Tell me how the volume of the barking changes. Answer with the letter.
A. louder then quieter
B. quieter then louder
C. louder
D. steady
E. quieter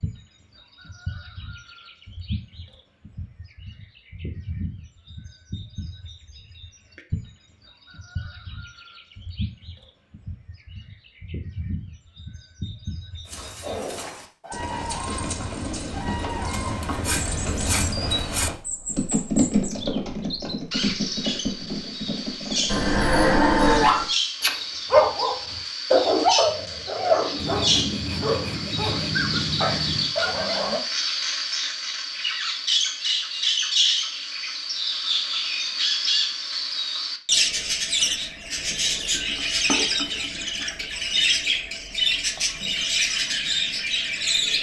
E.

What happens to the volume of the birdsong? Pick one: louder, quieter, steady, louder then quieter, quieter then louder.
louder.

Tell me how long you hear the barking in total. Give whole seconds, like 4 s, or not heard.
8 s.